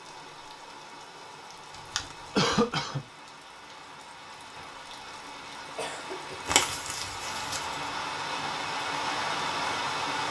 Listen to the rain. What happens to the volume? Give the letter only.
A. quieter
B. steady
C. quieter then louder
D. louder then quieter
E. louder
E.